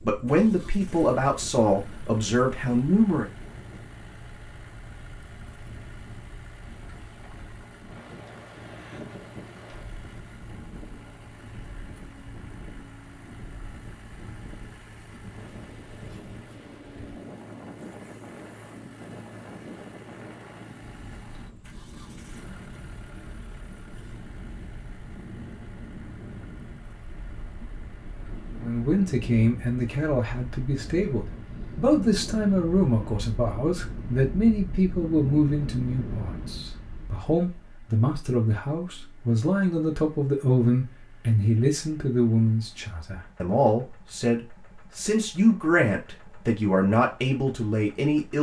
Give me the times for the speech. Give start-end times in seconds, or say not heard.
0.0-3.2, 28.6-48.3.